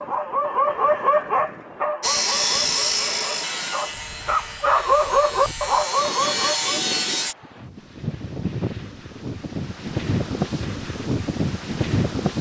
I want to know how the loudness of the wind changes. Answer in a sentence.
The loudness of the wind goes up.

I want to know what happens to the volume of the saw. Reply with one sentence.
The loudness of the saw goes down, then up.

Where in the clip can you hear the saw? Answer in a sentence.
The saw can be heard from 2.0 to 7.3 s.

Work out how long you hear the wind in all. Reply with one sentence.
The wind can be heard for 12 seconds in total.